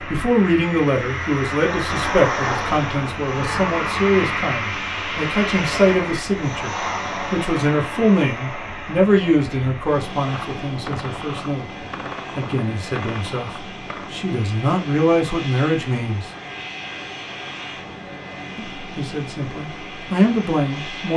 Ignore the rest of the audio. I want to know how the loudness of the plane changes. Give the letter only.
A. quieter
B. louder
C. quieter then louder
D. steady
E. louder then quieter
A.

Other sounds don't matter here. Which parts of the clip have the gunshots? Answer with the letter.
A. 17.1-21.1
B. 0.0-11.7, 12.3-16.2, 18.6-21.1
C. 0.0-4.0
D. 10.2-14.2
D.